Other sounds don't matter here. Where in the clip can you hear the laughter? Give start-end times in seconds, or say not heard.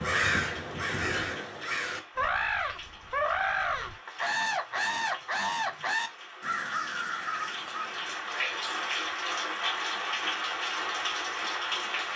not heard.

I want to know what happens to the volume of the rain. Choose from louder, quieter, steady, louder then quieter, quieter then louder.
louder.